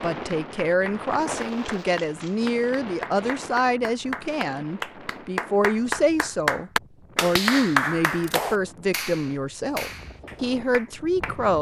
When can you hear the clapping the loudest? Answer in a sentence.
The loudest moment of the clapping is at 8 seconds.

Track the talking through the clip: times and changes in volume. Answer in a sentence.
You can hear the talking from 0.0 to 11.5 s, at a steady volume.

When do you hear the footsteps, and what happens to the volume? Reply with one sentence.
The footsteps can't be heard in this clip.